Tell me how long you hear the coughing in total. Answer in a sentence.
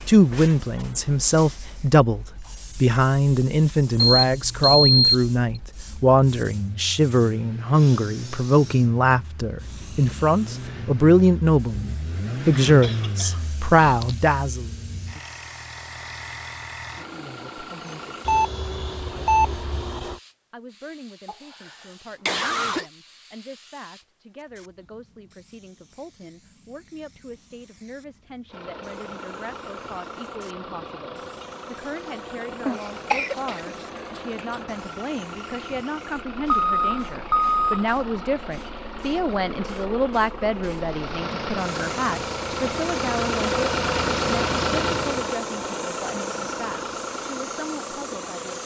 You can hear the coughing for 5 seconds altogether.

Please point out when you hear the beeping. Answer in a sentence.
You can hear the beeping from 4.0 to 5.2 s, from 18.2 to 20.1 s and from 36.5 to 37.9 s.